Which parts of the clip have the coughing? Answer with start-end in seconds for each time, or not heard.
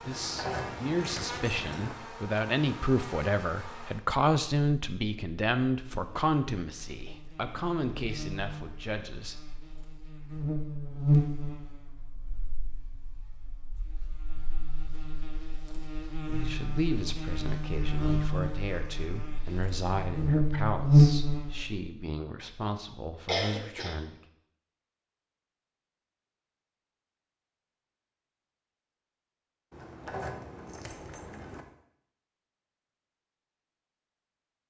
23.2-23.9.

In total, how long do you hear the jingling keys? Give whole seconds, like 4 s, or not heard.
4 s.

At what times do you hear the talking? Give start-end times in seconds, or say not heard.
0.0-9.4, 16.2-24.2.